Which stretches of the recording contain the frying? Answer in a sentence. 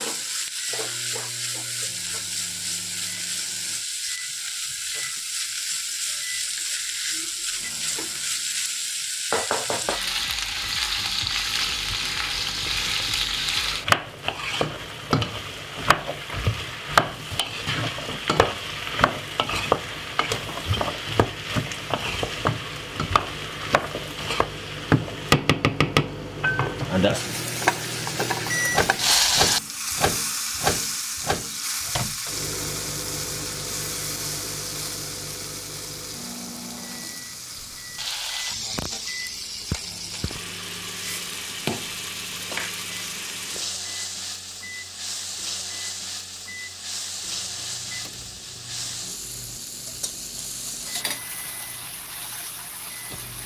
The frying can be heard from 0.0 to 53.4 s.